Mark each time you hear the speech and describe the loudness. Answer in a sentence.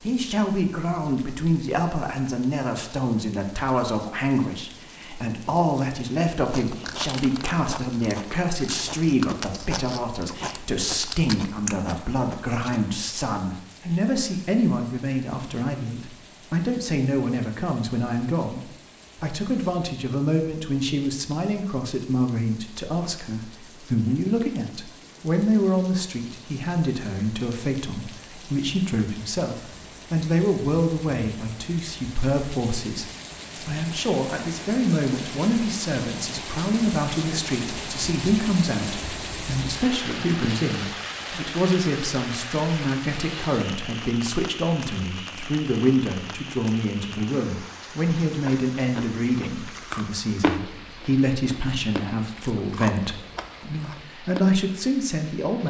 The speech can be heard from 0.0 to 55.6 s, at a steady volume.